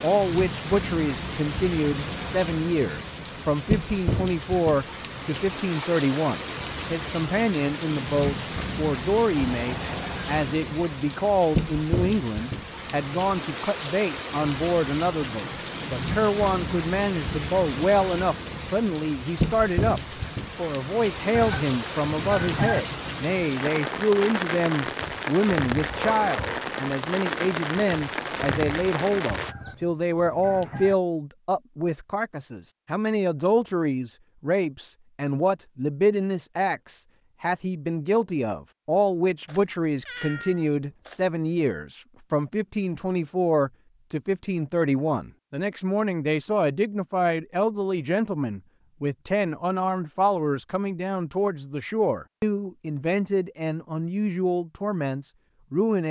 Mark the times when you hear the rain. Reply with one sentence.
You can hear the rain from 0.0 to 29.6 s.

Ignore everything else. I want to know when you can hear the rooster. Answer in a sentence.
The rooster can be heard from 21.4 to 22.8 s and from 29.4 to 30.9 s.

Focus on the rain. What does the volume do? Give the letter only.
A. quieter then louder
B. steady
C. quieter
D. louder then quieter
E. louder
B.